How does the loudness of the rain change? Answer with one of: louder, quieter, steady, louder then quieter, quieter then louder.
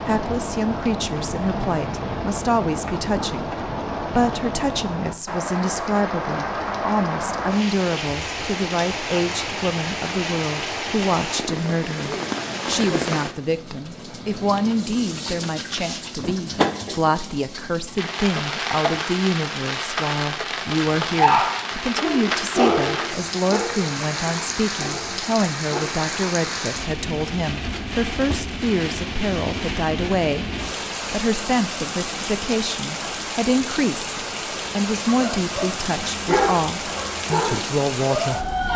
steady.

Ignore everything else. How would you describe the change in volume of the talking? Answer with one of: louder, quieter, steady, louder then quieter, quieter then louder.
steady.